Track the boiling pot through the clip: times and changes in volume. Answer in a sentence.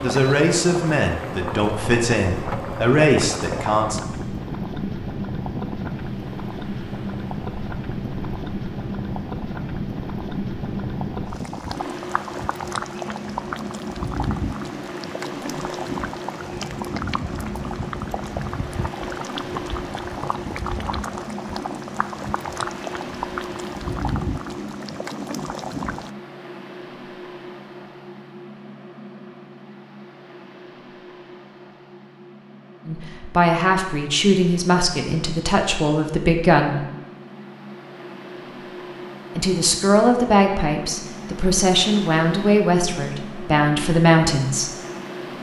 You can hear the boiling pot from 0.0 to 26.1 s, at a steady volume.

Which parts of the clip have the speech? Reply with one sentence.
The speech can be heard from 0.0 to 4.0 s, from 32.9 to 36.8 s and from 39.4 to 44.7 s.